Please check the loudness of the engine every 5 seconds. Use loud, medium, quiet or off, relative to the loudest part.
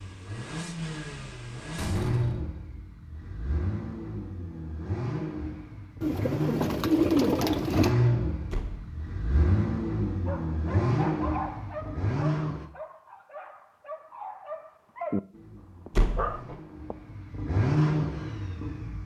medium, loud, loud, loud.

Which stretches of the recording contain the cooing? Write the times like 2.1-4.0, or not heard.
6.0-8.0.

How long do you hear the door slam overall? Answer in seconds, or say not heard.
2 s.